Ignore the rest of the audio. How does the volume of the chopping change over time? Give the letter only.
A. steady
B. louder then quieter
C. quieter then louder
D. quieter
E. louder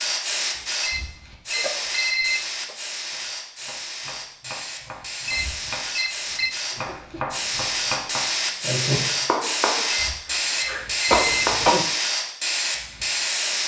E.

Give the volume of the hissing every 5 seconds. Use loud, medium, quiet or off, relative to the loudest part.
medium, loud, loud.